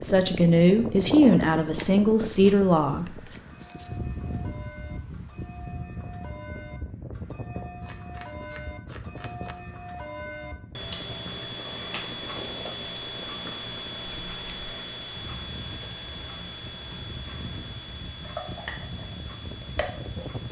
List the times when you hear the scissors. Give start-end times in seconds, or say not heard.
3.2-4.0, 7.8-9.6, 14.2-14.8.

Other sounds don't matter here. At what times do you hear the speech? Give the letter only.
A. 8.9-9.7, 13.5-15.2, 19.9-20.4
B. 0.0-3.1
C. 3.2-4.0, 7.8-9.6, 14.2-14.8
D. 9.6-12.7
B.